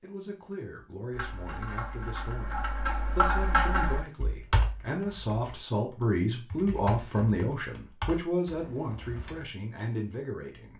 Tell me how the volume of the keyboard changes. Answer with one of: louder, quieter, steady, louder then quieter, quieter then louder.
louder then quieter.